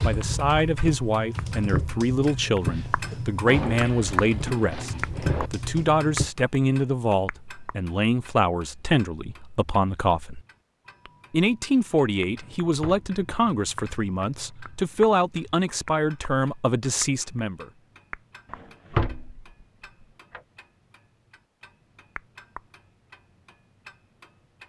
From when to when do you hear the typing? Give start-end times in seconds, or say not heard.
0.0-6.3.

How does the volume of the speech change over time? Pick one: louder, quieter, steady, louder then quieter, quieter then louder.
steady.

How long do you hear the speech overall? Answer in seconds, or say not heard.
17 s.